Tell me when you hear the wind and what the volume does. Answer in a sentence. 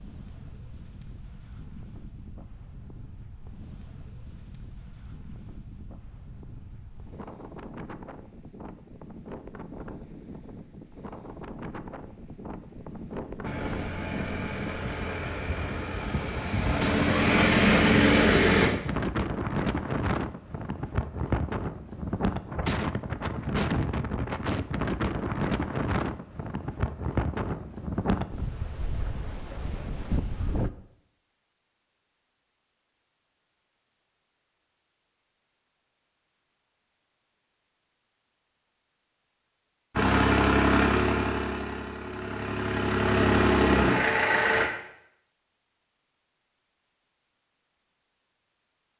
The wind can be heard from 0.0 to 30.7 s, getting louder.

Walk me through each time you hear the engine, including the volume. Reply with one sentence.
The engine can be heard from 13.4 to 18.7 s, getting louder; and from 40.0 to 44.6 s, getting quieter then louder.